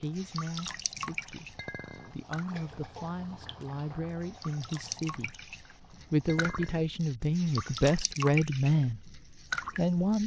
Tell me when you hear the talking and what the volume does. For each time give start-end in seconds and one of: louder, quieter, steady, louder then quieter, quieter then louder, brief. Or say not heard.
0.0-10.2 louder.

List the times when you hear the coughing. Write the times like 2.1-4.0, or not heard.
not heard.